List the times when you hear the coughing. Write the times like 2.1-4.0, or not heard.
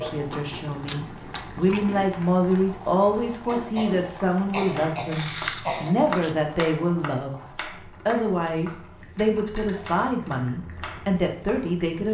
3.5-6.2.